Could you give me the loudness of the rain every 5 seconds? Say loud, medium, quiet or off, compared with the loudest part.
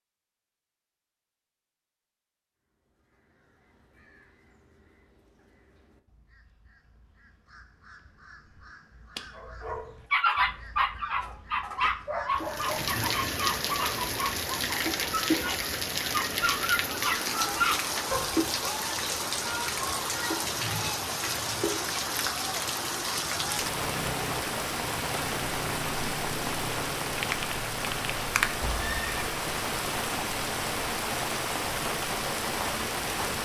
off, off, loud, loud, loud, loud, loud.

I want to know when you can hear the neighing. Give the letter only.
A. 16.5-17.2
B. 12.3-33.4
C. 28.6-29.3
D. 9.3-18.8
C.